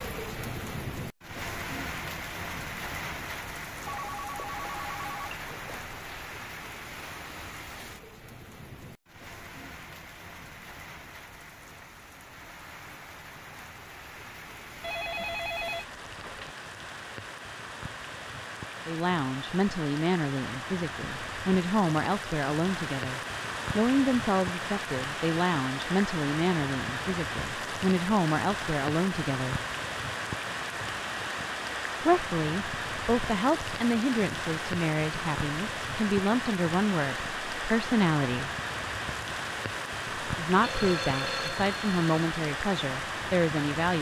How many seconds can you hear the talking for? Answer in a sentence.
You can hear the talking for 21 seconds altogether.